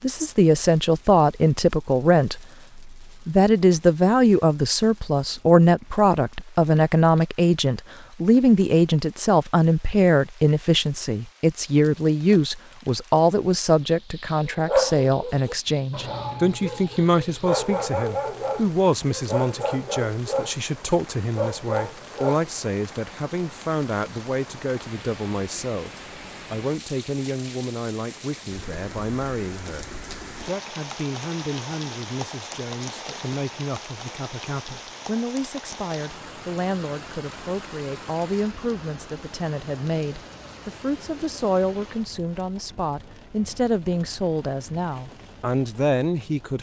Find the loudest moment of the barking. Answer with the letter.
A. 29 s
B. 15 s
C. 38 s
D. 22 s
B.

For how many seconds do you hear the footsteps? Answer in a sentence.
The footsteps can't be heard in this clip.